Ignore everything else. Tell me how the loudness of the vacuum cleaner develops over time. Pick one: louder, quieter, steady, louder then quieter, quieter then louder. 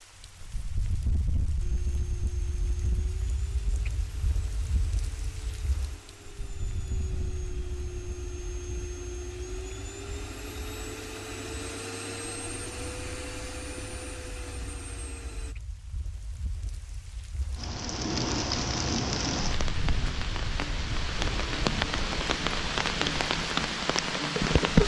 louder.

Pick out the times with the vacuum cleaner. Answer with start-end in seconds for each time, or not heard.
1.6-15.6.